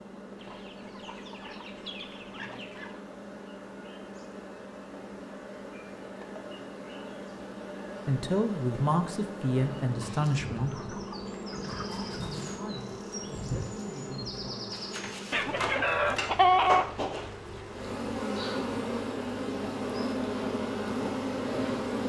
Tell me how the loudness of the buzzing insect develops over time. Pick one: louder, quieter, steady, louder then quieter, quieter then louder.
louder.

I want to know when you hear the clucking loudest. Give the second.
17 s.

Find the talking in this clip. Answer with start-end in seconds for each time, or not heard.
8.1-14.8.